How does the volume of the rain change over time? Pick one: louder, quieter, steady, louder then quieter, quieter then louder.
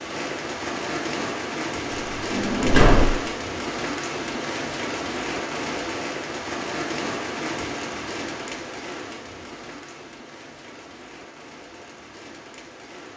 quieter.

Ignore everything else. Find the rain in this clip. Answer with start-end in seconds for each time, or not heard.
0.0-13.1.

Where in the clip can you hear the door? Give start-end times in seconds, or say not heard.
1.9-3.1.